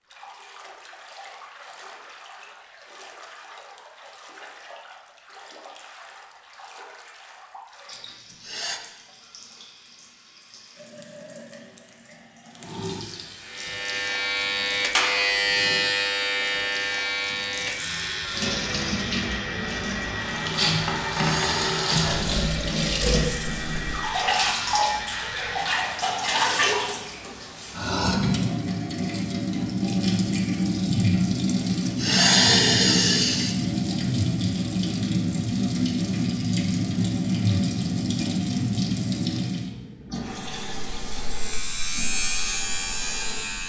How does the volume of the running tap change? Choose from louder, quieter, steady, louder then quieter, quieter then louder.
louder.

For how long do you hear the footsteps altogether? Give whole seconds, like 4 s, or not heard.
not heard.